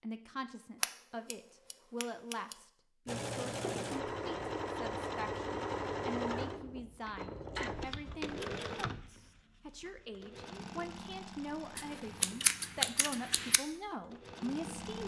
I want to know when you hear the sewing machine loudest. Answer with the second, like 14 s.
6 s.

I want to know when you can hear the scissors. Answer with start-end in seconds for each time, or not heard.
0.8-2.5, 11.8-13.6.